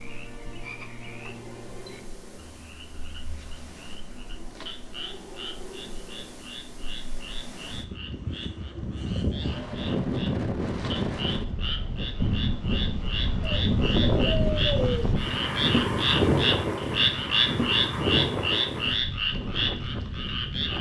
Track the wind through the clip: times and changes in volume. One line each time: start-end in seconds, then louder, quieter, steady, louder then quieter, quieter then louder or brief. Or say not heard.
0.0-20.7 louder.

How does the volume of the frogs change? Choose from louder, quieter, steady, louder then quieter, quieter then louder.
louder.